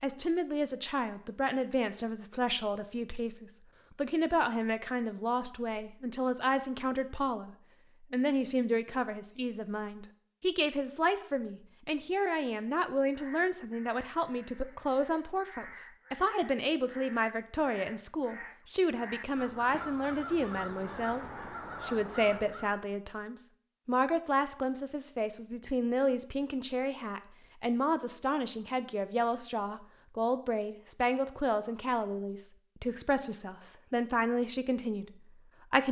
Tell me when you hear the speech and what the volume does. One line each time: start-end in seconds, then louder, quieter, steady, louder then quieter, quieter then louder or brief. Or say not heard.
0.0-35.8 steady.